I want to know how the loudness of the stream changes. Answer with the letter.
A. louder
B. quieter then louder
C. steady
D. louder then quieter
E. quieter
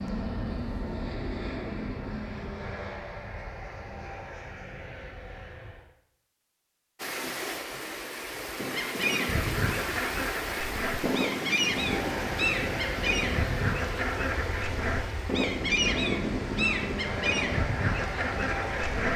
E.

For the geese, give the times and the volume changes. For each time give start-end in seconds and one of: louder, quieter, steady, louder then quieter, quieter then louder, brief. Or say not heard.
8.6-19.1 steady.